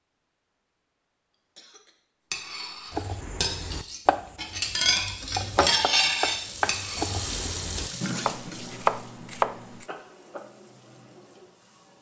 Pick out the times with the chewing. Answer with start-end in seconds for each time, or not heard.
not heard.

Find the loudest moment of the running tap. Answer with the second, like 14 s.
8 s.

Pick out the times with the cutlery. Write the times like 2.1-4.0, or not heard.
2.3-7.8.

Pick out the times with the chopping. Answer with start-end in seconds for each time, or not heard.
2.9-9.8.